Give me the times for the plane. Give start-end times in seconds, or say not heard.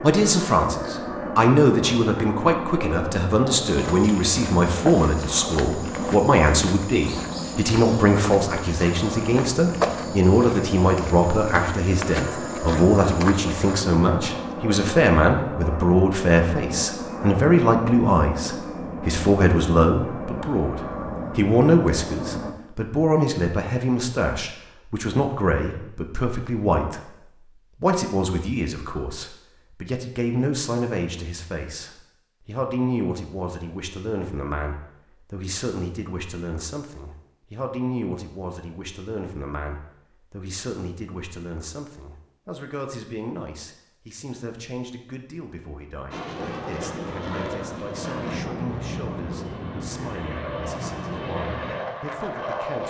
0.0-22.6, 46.1-52.8.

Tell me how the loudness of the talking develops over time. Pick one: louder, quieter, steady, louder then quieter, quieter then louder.
quieter.